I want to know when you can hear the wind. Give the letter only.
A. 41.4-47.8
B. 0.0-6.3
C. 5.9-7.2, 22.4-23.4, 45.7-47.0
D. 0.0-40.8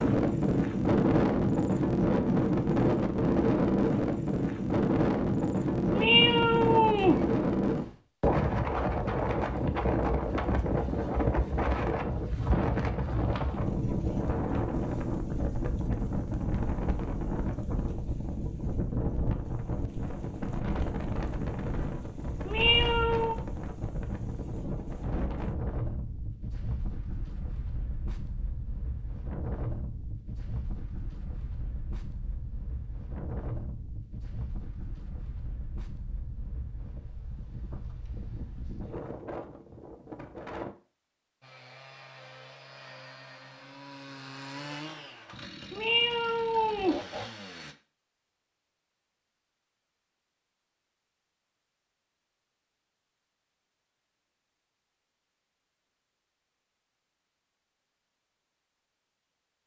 D.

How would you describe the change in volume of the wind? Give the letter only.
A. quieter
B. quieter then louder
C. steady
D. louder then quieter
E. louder
A.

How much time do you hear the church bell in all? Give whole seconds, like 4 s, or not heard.
not heard.